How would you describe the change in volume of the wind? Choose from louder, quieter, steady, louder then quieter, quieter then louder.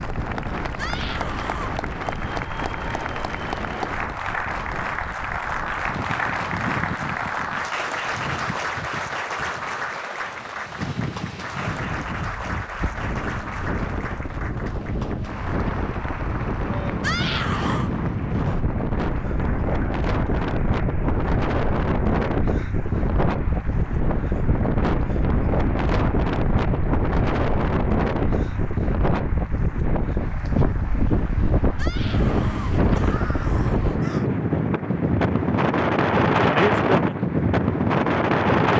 louder.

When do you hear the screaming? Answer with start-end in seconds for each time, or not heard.
0.8-1.8, 17.0-17.9, 31.8-34.2.